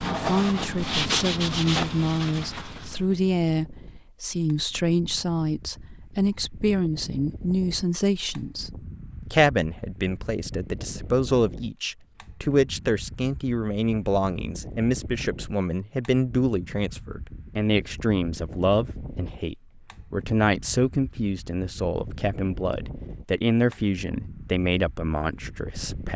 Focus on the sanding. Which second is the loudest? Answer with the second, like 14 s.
1 s.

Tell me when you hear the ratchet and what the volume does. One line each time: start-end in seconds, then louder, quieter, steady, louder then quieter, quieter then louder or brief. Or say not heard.
not heard.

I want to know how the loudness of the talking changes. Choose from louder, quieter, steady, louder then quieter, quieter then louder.
steady.